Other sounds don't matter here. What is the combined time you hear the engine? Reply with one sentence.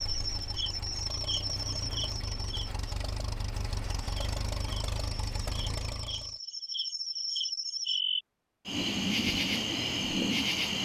You can hear the engine for 6 seconds altogether.